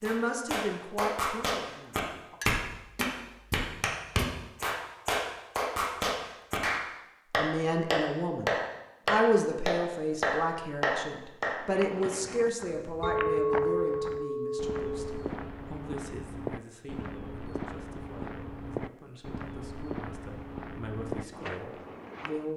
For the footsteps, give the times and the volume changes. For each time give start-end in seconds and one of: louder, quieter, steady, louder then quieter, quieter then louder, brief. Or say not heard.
11.6-22.5 steady.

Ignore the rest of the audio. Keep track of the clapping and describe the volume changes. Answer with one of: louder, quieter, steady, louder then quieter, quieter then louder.
steady.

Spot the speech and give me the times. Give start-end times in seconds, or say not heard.
0.0-2.4, 7.3-22.5.